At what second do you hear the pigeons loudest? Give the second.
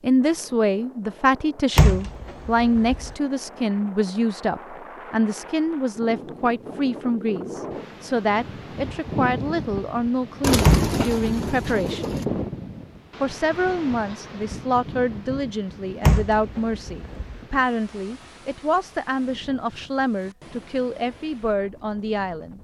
11 s.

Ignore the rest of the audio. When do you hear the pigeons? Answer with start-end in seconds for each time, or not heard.
10.4-12.2.